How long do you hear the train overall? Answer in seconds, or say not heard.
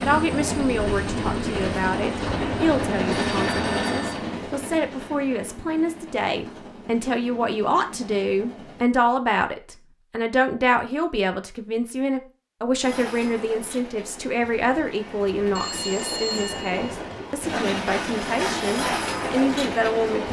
16 s.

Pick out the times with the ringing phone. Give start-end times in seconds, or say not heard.
3.1-4.2, 15.6-16.9.